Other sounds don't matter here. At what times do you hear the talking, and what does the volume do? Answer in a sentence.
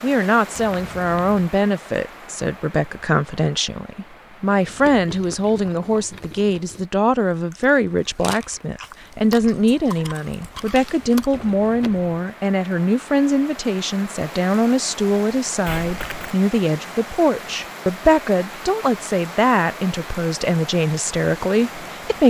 You can hear the talking from 0.0 to 22.2 s, at a steady volume.